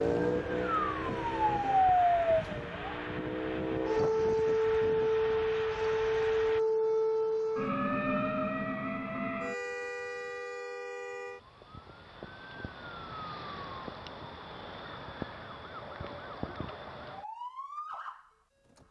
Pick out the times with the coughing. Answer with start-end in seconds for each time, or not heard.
not heard.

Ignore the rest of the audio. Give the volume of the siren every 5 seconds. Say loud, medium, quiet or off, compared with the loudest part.
loud, loud, quiet, quiet.